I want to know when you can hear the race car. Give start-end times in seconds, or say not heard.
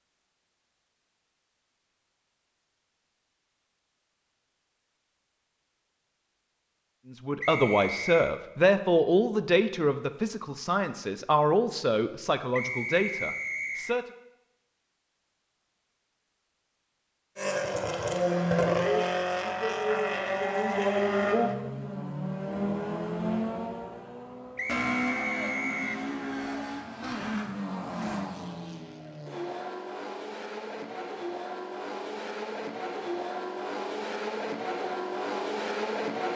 17.4-36.3.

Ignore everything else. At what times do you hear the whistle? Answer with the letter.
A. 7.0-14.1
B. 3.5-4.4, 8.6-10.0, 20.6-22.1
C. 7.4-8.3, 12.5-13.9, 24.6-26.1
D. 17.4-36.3
C.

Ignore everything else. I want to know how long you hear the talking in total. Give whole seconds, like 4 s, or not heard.
7 s.